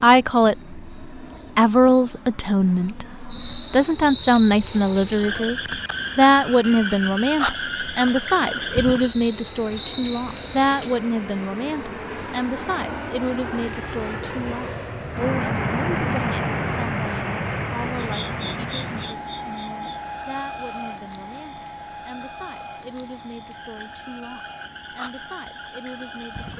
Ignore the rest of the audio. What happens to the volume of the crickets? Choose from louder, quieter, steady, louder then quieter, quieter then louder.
quieter.